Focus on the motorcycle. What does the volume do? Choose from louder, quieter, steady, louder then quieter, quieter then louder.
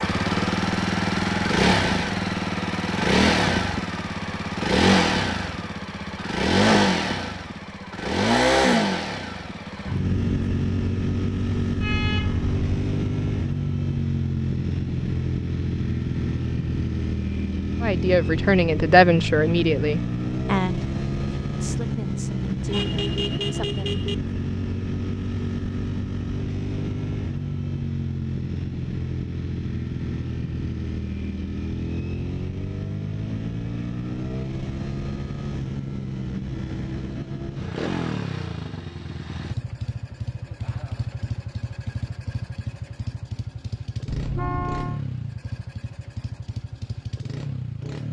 quieter.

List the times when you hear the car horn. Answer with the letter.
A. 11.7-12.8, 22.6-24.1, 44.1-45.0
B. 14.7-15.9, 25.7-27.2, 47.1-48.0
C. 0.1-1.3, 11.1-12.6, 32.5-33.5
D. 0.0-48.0
A.